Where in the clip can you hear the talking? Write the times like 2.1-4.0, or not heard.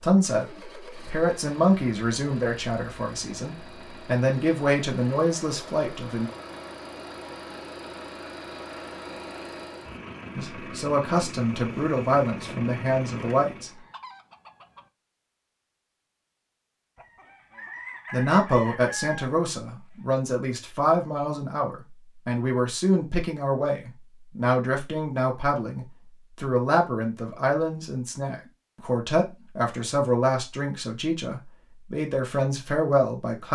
0.0-6.3, 10.3-13.7, 18.1-33.4.